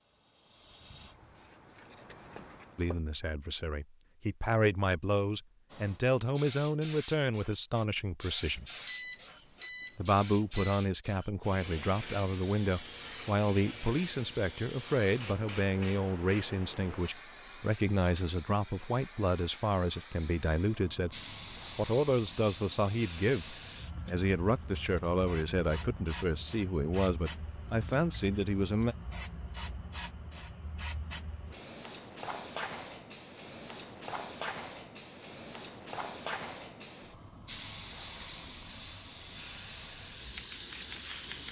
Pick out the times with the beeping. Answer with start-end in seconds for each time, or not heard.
8.4-10.8.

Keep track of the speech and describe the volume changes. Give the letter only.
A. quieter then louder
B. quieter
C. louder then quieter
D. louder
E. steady
E.